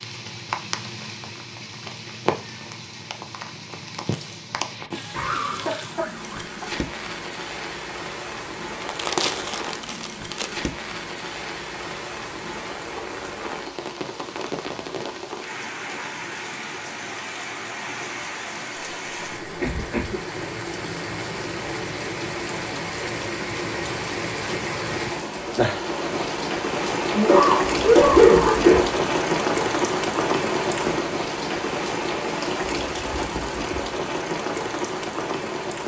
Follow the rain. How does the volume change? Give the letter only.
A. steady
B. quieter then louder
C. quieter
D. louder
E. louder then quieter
D.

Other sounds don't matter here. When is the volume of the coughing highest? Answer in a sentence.
The loudest moment of the coughing is at 28 seconds.